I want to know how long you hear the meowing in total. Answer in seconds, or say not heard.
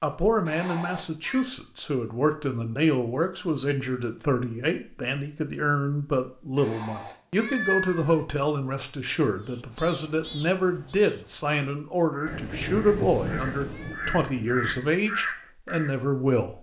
4 s.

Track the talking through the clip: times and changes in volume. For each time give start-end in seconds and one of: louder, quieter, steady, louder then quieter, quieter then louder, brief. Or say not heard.
0.0-16.5 steady.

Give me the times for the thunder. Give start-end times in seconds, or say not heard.
12.2-14.8.